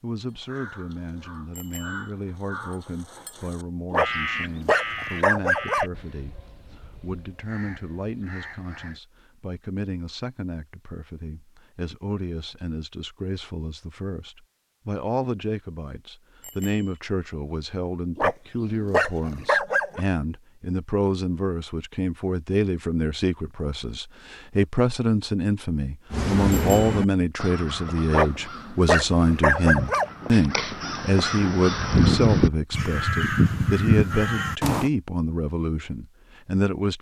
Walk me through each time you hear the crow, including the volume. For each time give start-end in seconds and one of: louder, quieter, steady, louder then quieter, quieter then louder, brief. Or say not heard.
0.2-9.0 louder then quieter
26.1-34.9 quieter then louder.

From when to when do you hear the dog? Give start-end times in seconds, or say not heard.
3.9-5.8, 18.1-20.0, 28.1-30.1.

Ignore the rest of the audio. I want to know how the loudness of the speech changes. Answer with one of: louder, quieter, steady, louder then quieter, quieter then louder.
louder.